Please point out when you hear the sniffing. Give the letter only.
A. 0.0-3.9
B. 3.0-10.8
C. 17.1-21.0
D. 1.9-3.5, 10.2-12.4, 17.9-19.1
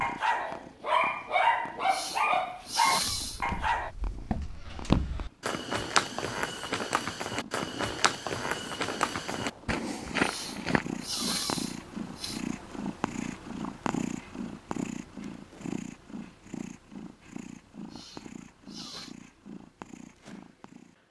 D.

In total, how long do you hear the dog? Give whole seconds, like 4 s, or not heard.
4 s.